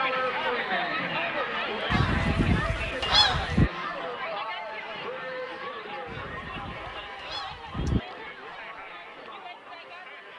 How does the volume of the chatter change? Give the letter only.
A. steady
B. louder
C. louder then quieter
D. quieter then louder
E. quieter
E.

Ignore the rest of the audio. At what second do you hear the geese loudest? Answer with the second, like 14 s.
3 s.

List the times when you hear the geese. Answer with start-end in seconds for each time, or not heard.
1.9-3.7, 6.0-8.0.